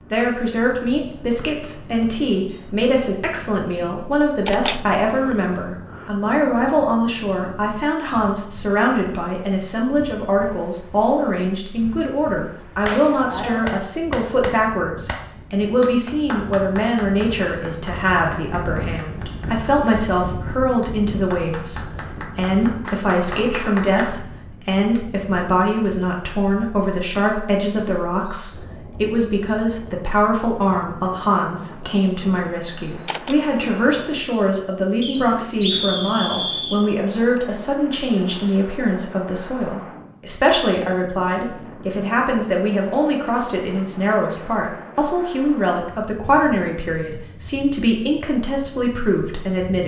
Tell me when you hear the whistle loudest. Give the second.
36 s.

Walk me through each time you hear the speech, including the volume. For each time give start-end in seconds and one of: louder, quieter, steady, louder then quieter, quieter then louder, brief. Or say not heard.
0.1-49.8 steady.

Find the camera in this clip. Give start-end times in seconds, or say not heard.
4.1-6.1, 32.9-33.4.